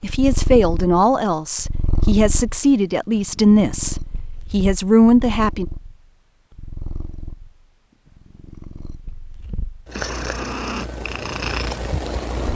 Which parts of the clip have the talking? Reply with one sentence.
The talking can be heard from 0.0 to 5.7 s.